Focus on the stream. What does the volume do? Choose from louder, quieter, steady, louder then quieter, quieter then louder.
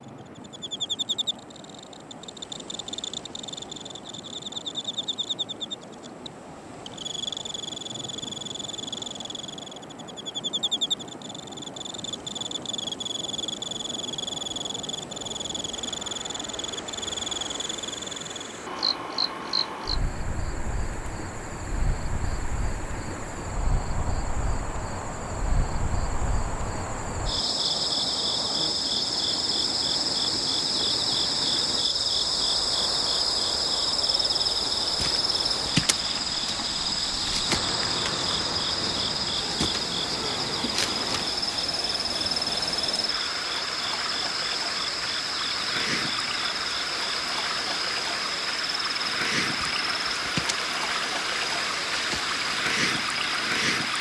louder.